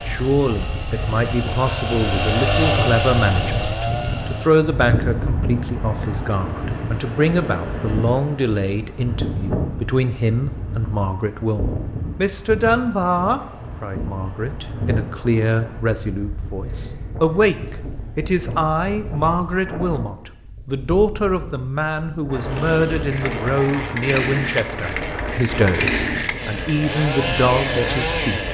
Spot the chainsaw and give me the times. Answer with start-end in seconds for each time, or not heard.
0.0-4.5, 22.4-28.4.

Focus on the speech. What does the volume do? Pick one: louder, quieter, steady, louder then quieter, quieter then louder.
steady.